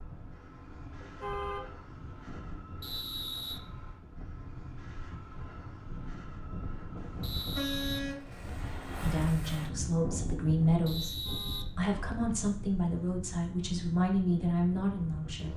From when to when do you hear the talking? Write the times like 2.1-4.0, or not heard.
9.0-15.5.